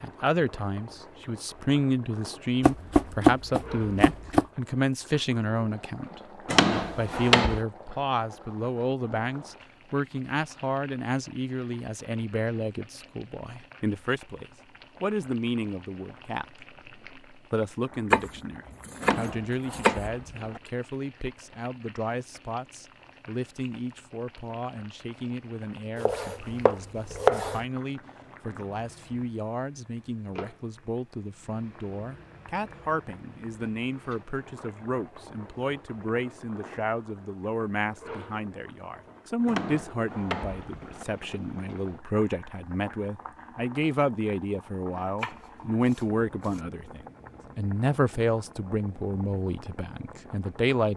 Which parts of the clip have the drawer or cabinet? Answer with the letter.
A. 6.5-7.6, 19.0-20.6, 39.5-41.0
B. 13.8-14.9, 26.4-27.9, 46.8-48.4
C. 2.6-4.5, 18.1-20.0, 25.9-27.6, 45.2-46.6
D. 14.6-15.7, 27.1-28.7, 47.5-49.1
A.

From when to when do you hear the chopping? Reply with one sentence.
The chopping can be heard from 2.6 to 4.5 s, from 18.1 to 20.0 s, from 25.9 to 27.6 s and from 45.2 to 46.6 s.